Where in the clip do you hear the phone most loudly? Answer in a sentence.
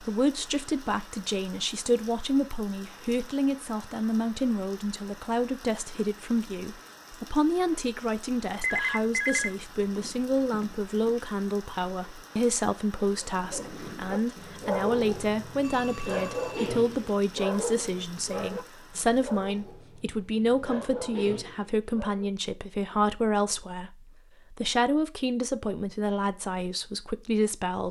The loudest moment of the phone is at 9 seconds.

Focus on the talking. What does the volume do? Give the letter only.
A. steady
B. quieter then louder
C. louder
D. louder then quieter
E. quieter
A.